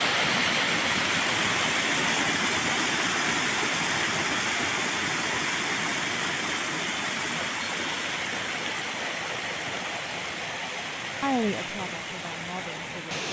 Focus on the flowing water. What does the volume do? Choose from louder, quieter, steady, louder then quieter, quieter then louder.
quieter.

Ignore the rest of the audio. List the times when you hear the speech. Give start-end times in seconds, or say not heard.
11.2-13.2.